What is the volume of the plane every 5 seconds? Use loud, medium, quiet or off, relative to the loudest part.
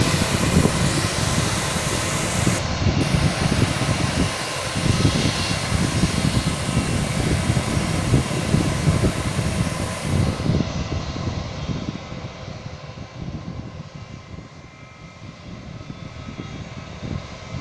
loud, loud, medium, quiet.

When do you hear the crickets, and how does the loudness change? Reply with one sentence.
You can't hear the crickets here.